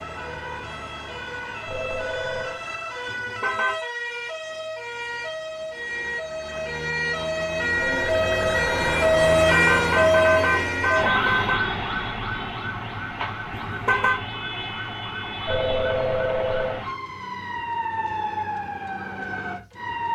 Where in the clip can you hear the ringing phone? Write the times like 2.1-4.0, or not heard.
1.6-2.6, 7.8-9.3, 15.4-16.8.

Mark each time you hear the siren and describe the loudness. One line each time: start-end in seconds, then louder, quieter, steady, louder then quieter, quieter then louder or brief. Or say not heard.
0.0-20.1 louder then quieter.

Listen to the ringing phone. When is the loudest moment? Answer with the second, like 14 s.
16 s.